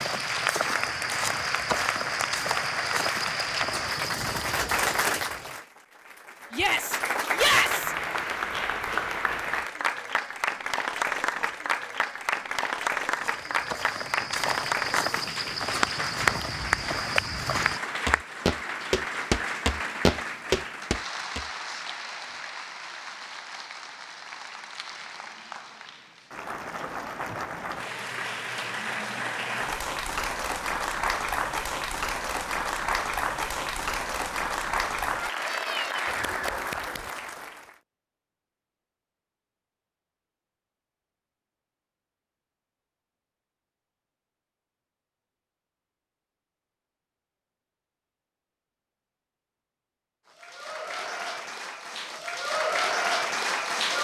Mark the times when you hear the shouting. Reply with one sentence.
You can hear the shouting from 6.5 to 8.0 s.